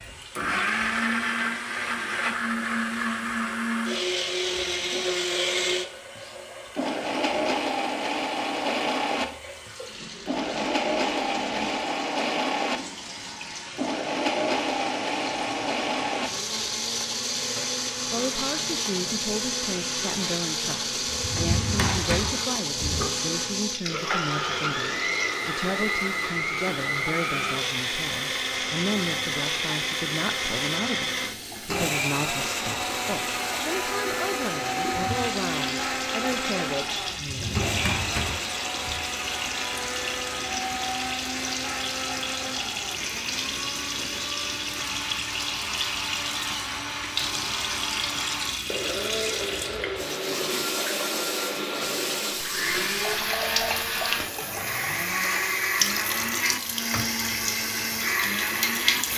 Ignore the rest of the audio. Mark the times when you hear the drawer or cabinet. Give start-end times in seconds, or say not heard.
21.1-23.1, 37.1-39.0.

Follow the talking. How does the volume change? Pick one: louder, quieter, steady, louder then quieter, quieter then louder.
steady.